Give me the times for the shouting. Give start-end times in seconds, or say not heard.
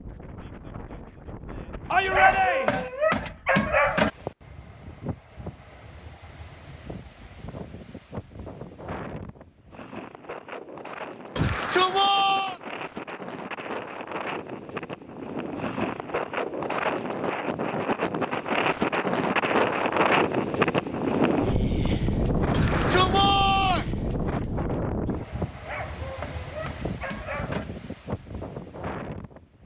1.9-2.9, 11.3-12.6, 22.5-23.9.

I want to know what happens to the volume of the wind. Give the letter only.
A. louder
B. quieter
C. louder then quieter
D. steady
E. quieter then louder
C.